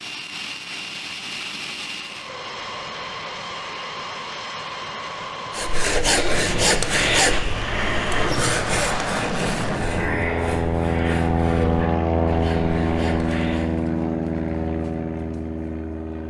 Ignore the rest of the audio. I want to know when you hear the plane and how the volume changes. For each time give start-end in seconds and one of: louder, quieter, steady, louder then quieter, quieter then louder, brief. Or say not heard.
0.0-16.2 louder.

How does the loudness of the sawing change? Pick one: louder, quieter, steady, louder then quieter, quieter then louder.
quieter.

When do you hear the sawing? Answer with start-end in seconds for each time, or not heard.
5.5-13.7.